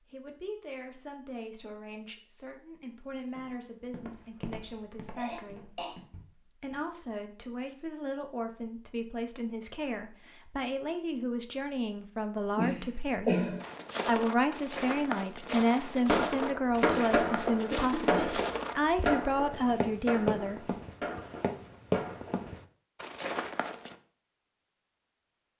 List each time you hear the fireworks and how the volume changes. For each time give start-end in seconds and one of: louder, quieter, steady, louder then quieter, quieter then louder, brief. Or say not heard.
16.1-22.5 quieter.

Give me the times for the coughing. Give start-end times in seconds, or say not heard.
5.2-6.0, 12.6-13.6, 17.7-18.5.